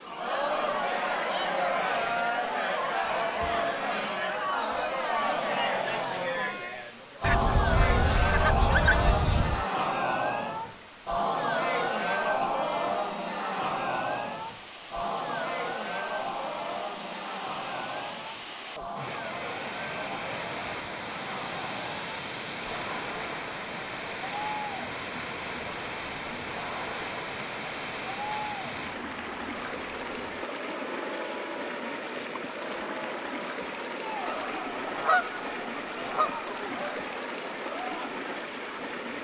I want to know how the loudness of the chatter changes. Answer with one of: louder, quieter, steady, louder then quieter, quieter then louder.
quieter.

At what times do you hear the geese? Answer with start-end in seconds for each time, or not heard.
7.2-9.7, 34.2-36.5.